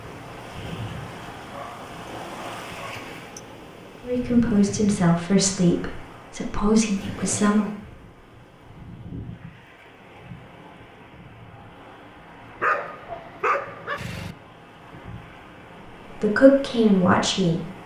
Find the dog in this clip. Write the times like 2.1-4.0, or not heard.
1.5-3.4, 12.6-14.3.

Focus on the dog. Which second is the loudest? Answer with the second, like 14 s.
13 s.